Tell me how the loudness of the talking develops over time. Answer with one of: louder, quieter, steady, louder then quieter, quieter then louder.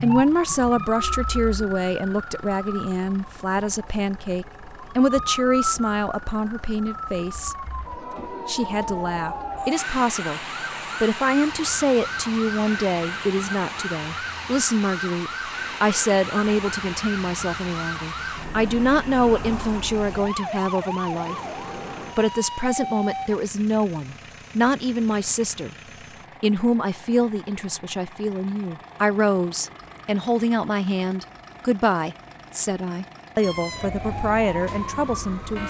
steady.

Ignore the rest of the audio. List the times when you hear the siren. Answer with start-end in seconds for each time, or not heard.
0.0-23.4, 33.4-35.6.